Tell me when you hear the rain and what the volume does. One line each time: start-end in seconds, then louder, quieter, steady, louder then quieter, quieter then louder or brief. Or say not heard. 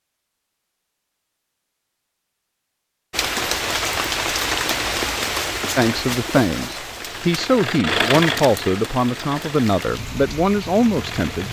3.1-11.4 quieter.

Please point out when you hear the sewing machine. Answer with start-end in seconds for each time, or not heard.
6.9-11.4.